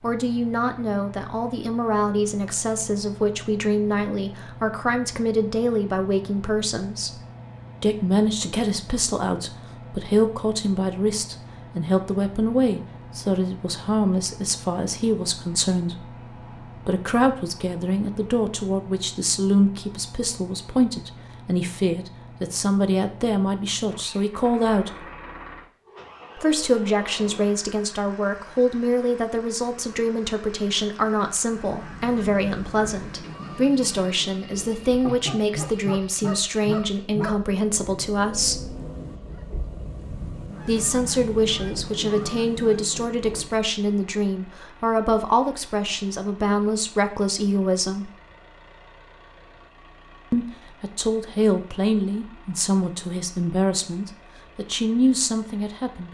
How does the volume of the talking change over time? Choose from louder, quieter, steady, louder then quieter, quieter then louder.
steady.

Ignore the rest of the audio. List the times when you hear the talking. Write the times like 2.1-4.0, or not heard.
0.0-25.1, 26.4-38.8, 40.6-48.1, 50.3-56.0.